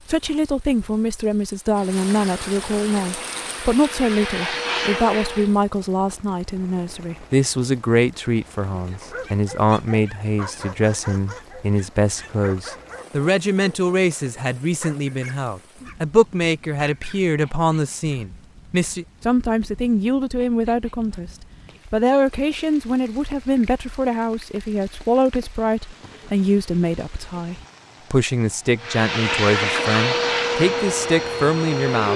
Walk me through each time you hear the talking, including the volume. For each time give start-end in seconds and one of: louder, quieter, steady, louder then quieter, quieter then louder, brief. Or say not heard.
0.1-32.1 steady.